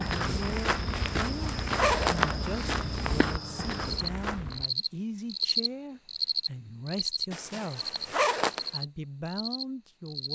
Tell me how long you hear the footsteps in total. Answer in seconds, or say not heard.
5 s.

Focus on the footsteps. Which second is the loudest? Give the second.
2 s.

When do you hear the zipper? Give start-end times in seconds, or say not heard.
0.9-2.2, 7.3-8.7.